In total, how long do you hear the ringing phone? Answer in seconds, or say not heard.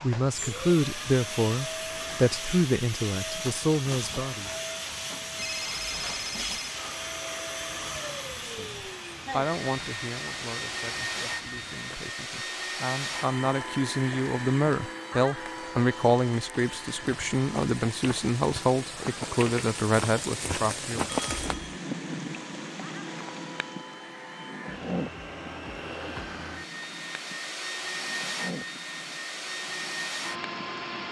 2 s.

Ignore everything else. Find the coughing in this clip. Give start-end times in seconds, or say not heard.
not heard.